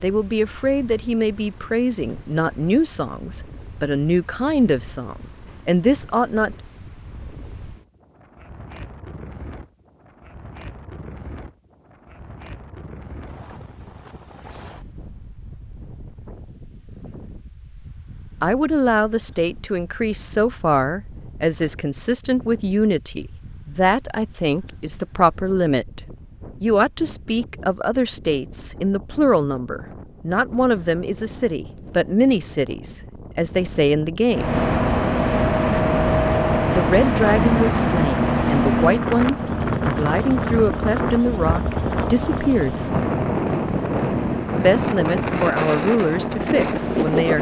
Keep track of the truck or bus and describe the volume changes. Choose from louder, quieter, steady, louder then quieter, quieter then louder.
quieter.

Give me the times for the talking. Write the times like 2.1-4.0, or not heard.
0.0-6.5, 18.4-26.0, 26.6-34.5, 36.7-42.8, 44.5-47.3.